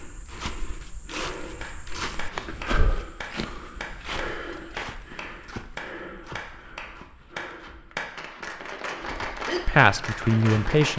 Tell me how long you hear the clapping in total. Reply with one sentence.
The clapping can be heard for 9 seconds in total.